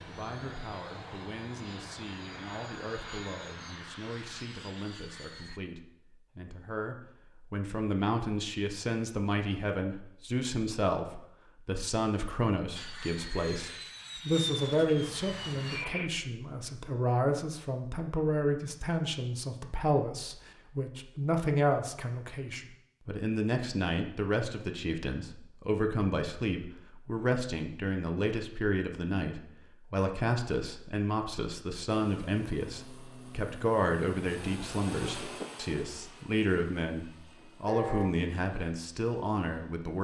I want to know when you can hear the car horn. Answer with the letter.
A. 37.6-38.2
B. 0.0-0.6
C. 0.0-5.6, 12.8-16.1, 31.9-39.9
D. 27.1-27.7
A.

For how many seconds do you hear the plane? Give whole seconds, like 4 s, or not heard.
17 s.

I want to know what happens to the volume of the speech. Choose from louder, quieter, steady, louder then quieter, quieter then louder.
louder.